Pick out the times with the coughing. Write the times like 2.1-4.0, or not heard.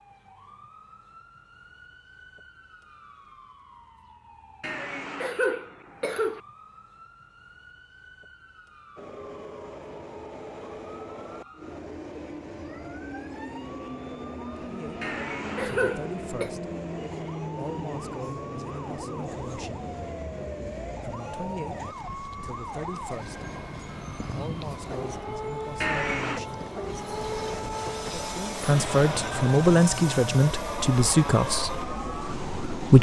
4.6-6.4, 15.0-16.5, 25.8-26.4.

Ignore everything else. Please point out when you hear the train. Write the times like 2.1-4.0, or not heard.
8.9-32.9.